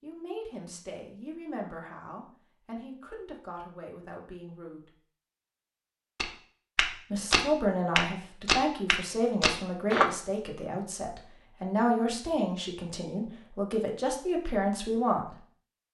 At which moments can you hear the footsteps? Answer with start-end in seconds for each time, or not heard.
6.2-10.1.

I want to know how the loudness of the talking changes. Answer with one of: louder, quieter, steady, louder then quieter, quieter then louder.
louder.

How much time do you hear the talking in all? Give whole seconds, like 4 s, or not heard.
13 s.